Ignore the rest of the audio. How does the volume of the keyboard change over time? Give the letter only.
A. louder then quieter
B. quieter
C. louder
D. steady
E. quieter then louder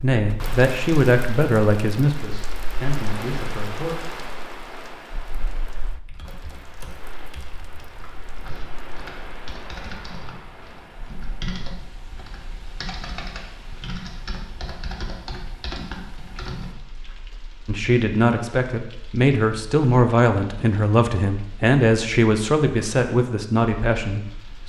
C.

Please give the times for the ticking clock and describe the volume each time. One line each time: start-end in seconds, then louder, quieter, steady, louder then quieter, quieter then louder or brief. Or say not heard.
not heard.